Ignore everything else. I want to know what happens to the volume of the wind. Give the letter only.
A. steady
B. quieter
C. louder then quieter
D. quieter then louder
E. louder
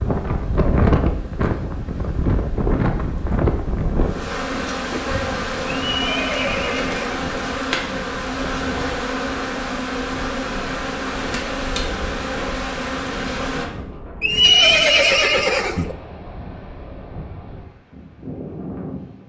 B.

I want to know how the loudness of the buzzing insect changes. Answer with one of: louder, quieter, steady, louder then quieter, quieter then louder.
louder.